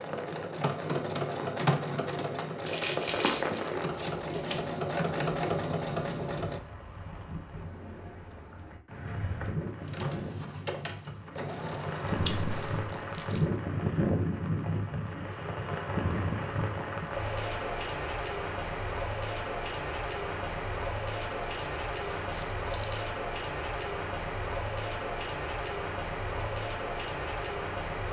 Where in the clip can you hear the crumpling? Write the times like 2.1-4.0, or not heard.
2.6-4.7, 12.0-13.4, 21.1-23.1.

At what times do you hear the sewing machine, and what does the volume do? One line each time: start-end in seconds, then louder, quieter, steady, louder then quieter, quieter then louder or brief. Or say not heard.
0.0-6.6 quieter then louder
9.8-12.8 brief.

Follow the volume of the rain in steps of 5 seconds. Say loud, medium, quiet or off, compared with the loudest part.
loud, medium, loud, loud, loud, loud.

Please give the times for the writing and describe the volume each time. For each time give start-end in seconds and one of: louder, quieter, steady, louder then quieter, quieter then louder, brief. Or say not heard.
not heard.